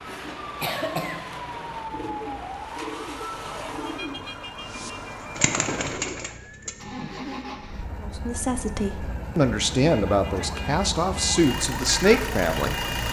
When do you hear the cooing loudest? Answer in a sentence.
The volume of the cooing peaks at 6 seconds.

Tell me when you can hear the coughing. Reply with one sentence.
You can hear the coughing from 0.1 to 1.4 s.